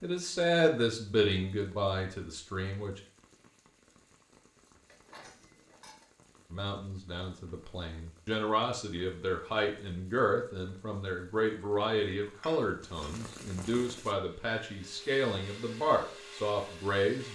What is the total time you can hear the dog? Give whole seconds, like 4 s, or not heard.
not heard.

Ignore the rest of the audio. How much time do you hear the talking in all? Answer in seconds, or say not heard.
14 s.